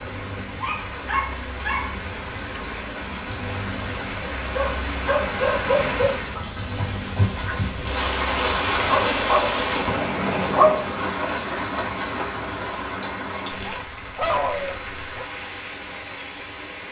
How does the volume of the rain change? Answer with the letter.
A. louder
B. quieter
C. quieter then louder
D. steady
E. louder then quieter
E.